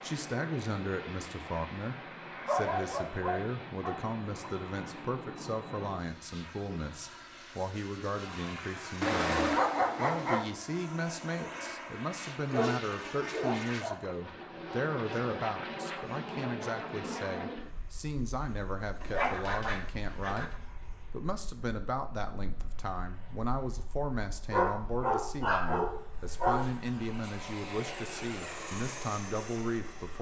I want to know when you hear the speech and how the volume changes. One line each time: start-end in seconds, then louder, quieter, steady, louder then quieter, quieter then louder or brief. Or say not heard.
0.0-20.5 steady
21.1-30.1 steady.